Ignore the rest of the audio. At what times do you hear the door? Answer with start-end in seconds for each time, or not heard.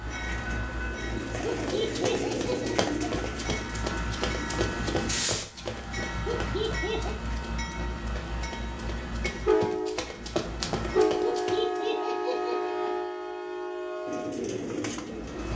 not heard.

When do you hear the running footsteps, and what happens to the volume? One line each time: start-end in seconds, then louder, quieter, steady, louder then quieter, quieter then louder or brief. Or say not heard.
1.4-11.8 quieter then louder.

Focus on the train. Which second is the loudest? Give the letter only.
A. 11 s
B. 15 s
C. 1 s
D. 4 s
A.